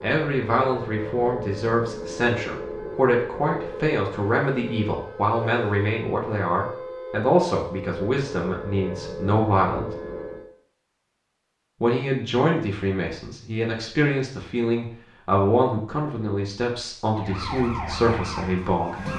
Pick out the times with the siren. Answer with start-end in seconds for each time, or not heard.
0.0-10.5, 17.1-19.1.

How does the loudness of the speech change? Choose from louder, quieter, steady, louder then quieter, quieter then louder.
steady.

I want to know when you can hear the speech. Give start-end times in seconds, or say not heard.
0.0-9.9, 11.8-19.0.